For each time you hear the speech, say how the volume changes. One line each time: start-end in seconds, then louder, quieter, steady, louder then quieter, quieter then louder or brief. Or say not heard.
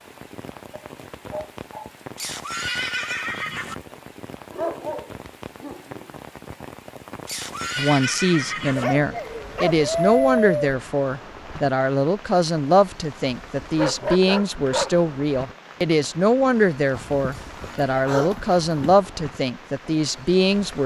7.8-20.8 steady.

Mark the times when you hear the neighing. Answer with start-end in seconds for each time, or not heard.
2.1-3.8, 7.2-8.8, 17.3-17.9.